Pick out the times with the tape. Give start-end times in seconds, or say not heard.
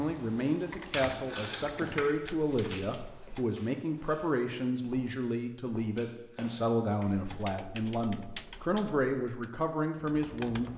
0.9-2.1, 6.0-7.2.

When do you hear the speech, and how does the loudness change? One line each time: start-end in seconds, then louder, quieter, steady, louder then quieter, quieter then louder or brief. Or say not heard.
0.0-10.7 steady.